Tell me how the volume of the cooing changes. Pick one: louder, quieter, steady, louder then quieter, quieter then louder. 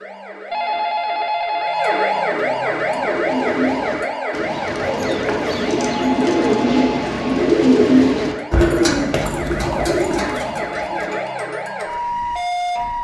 louder then quieter.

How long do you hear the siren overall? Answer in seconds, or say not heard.
13 s.